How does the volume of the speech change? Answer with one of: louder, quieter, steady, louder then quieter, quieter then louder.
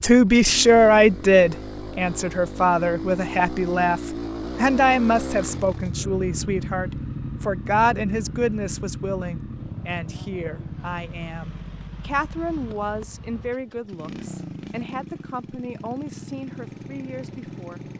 quieter.